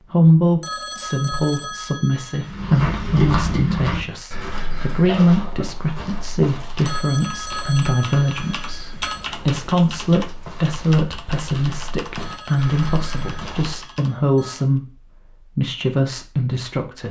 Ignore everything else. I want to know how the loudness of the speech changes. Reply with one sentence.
The volume of the speech stays about the same.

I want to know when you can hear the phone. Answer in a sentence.
You can hear the phone from 0.6 to 2.5 s, from 6.8 to 9.2 s and from 12.2 to 14.7 s.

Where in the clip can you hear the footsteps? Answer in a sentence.
You can hear the footsteps from 2.5 to 13.8 s.